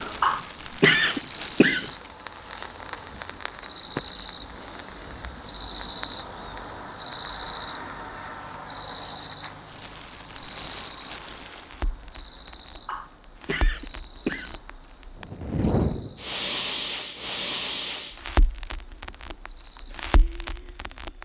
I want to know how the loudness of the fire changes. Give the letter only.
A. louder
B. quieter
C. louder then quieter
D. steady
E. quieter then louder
E.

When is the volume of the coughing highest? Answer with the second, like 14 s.
1 s.